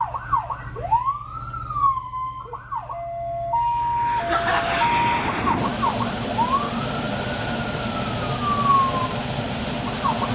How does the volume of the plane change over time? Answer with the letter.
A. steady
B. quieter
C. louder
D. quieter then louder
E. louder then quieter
A.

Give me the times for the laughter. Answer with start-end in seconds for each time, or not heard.
4.2-5.0.